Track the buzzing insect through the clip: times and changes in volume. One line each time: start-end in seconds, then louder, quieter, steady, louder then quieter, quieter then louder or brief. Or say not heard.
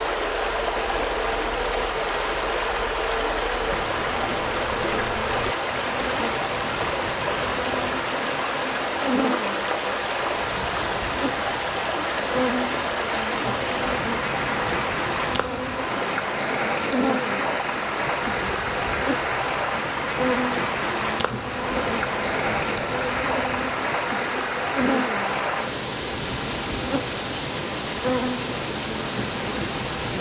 0.0-30.1 steady.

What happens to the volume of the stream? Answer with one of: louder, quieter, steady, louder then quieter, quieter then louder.
steady.